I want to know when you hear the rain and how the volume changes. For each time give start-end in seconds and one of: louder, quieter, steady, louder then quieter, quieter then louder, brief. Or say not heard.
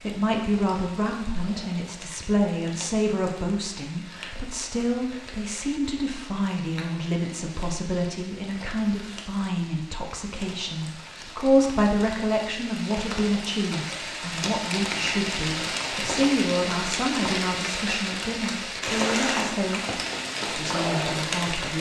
0.0-21.7 louder.